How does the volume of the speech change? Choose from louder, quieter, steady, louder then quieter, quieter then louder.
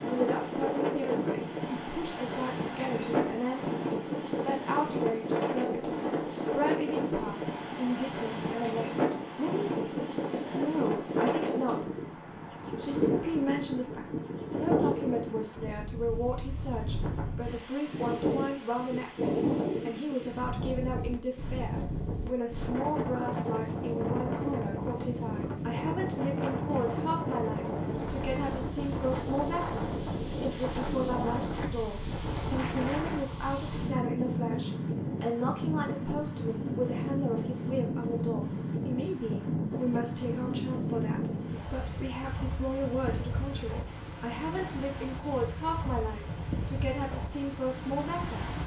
steady.